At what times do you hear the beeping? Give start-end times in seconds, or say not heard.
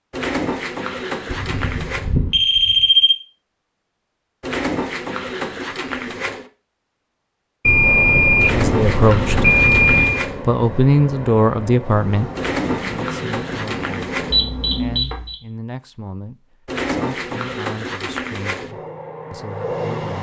1.3-3.1, 7.7-10.2, 14.3-15.3.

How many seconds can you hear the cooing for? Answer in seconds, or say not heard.
10 s.